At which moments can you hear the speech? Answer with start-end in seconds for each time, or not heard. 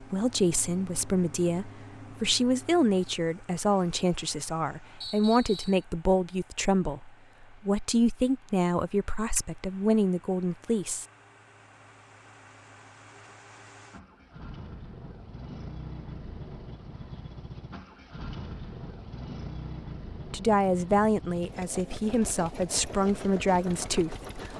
0.0-11.1, 20.3-24.5.